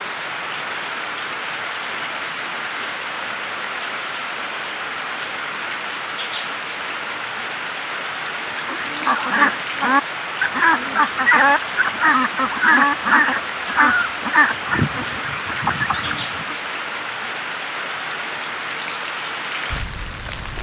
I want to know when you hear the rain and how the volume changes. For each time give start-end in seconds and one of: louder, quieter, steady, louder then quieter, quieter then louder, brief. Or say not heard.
0.0-20.5 steady.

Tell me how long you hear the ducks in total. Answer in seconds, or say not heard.
8 s.